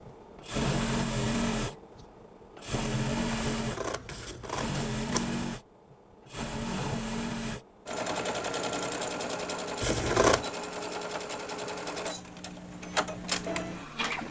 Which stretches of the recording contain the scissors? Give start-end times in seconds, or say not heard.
3.5-5.3, 9.8-10.4.